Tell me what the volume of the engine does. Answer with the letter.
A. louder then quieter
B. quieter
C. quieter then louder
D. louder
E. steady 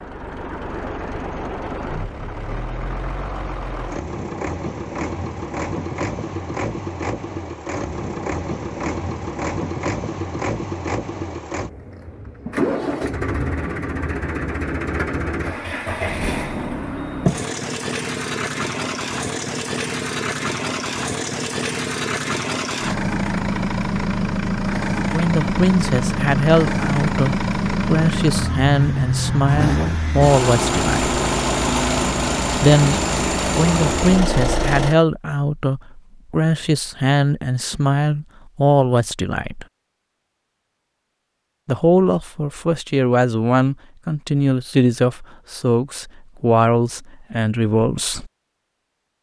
D.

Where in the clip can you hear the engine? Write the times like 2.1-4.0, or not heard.
0.0-35.0.